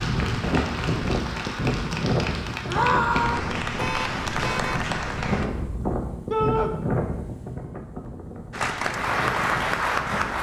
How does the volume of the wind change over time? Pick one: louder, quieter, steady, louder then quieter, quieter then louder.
quieter.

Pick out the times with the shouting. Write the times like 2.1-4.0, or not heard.
2.6-3.5, 6.3-6.7.